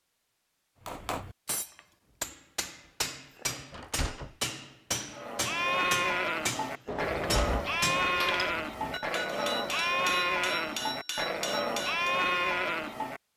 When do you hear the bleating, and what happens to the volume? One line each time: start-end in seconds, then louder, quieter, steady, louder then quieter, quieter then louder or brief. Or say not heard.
5.1-13.2 steady.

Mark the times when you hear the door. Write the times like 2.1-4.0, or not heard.
3.7-4.3, 6.8-9.0.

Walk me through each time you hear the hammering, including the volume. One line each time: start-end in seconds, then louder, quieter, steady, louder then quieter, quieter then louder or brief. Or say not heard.
0.8-12.2 steady.